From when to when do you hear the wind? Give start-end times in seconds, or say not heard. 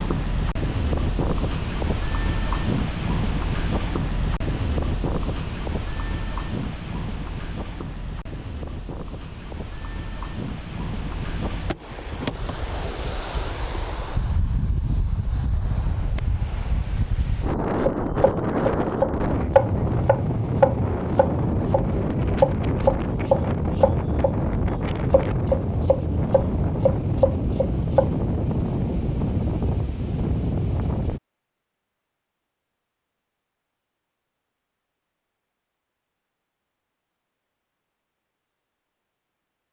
0.0-31.2.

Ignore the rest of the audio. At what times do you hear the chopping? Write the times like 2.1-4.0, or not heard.
17.9-28.1.